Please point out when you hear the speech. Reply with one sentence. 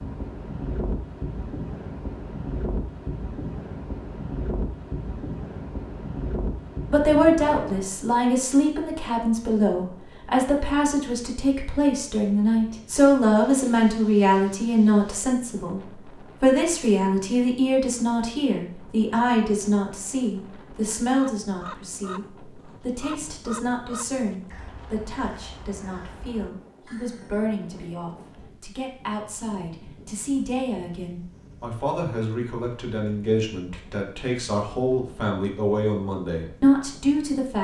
The speech can be heard from 6.9 to 37.5 s.